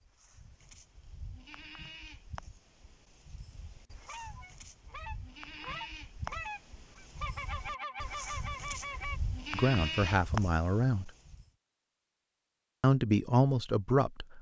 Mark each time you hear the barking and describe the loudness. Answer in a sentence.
The barking can't be heard in this clip.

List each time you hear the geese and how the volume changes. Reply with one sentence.
The geese can be heard from 4.0 to 9.2 s, getting louder.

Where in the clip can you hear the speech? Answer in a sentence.
The speech can be heard from 9.5 to 11.1 s and from 12.8 to 14.3 s.